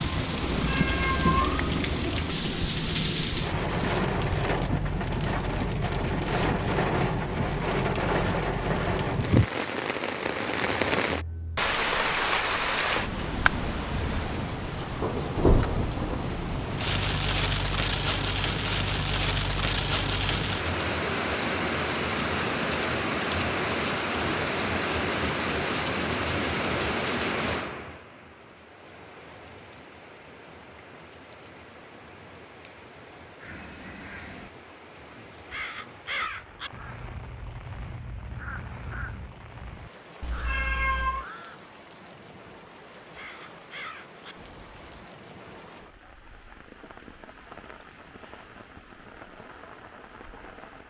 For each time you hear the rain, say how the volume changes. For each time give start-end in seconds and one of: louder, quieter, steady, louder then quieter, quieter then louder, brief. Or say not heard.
0.0-50.8 quieter.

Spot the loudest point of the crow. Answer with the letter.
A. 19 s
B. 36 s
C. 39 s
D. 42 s
B.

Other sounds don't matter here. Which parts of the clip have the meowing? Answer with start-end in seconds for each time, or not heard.
0.6-1.8, 40.2-41.2.